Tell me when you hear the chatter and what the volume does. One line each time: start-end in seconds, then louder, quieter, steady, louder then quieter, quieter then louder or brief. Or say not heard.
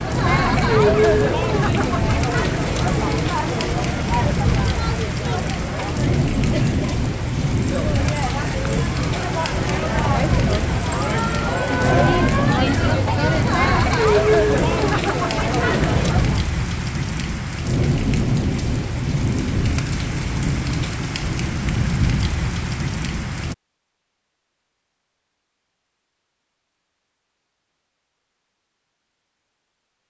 0.0-16.4 quieter then louder.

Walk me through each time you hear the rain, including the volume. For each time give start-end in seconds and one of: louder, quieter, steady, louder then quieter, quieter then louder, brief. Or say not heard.
0.0-23.6 steady.